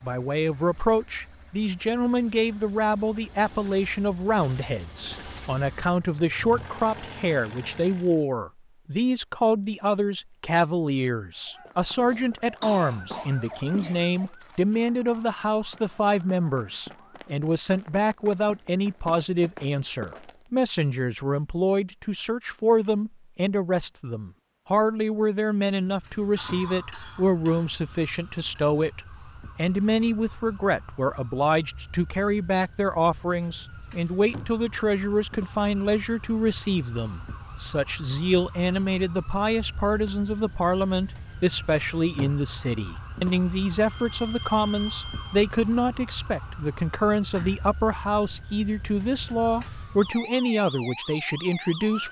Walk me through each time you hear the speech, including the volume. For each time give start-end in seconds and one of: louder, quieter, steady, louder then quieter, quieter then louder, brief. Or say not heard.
0.0-52.0 steady.